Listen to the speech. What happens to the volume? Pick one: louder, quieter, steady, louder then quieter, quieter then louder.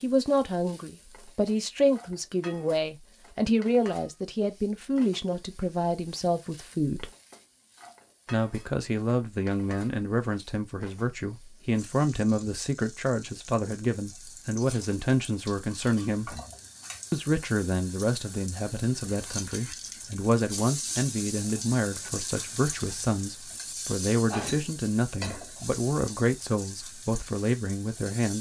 steady.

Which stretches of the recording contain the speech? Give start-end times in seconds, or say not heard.
0.0-7.1, 8.3-16.4, 17.1-28.3.